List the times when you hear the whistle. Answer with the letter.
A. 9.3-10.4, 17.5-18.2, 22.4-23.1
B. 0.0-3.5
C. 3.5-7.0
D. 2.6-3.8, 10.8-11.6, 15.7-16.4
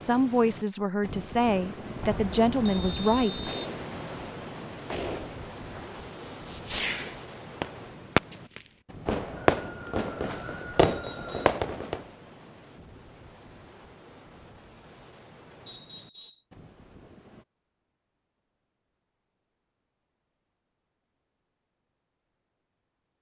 D.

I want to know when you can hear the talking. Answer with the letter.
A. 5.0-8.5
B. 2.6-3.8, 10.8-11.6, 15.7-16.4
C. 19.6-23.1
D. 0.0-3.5
D.